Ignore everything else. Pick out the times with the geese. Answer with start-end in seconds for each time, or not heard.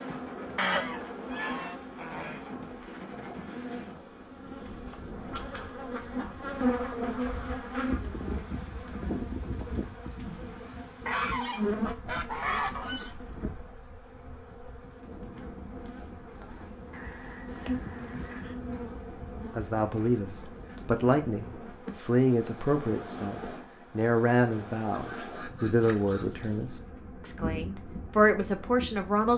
0.6-2.5, 11.1-13.2, 16.9-18.6, 24.9-26.6.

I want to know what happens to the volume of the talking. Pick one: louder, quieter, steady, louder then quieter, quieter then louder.
steady.